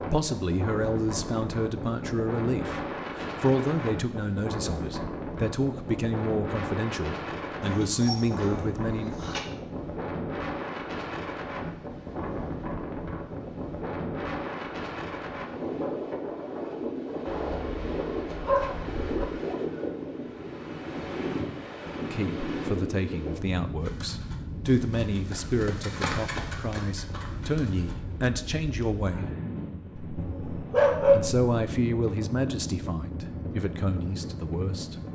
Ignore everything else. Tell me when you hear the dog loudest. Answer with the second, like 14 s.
31 s.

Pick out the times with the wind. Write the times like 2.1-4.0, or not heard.
0.0-35.1.